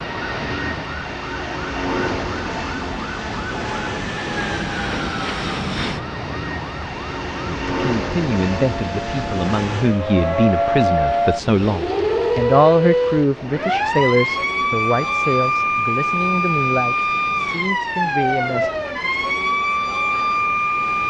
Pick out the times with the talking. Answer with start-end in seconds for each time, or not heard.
7.5-18.7.